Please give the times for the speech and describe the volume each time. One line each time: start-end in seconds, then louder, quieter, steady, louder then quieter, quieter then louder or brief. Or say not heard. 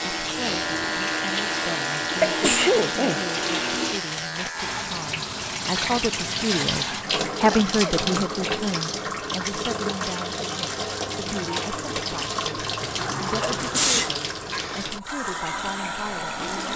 0.2-16.7 louder then quieter.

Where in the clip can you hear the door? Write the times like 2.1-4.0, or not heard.
12.8-14.2.